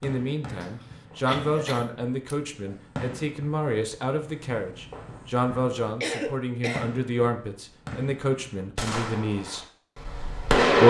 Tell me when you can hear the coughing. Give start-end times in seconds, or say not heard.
0.6-2.4, 6.0-6.8.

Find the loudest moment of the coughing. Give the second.
6 s.